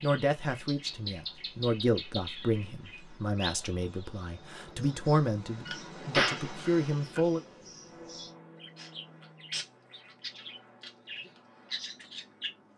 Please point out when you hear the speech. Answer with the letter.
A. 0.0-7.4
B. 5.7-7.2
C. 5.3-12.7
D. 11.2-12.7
A.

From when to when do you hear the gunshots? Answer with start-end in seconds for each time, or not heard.
5.7-7.2.